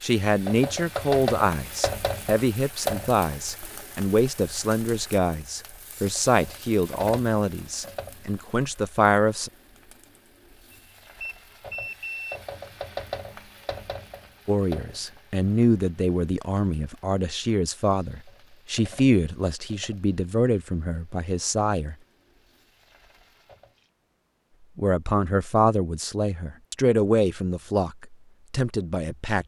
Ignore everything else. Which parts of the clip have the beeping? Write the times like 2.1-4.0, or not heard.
10.7-12.4.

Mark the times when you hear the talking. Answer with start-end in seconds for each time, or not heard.
0.0-9.5, 14.4-21.9, 24.8-29.4.